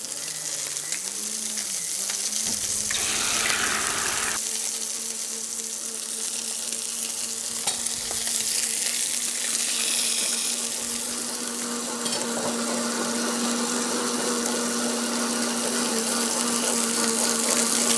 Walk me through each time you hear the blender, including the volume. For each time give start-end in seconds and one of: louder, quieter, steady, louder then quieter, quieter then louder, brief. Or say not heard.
0.0-17.9 louder.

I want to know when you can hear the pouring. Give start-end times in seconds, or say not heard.
2.5-4.4, 9.2-10.4.